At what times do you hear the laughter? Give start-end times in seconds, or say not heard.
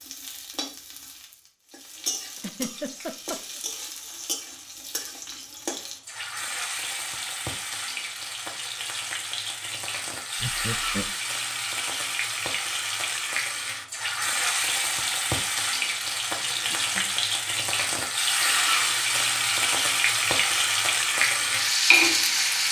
2.4-3.6, 10.4-11.1, 16.4-17.1.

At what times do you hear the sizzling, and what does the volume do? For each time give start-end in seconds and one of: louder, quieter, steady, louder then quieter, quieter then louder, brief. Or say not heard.
0.0-22.6 louder.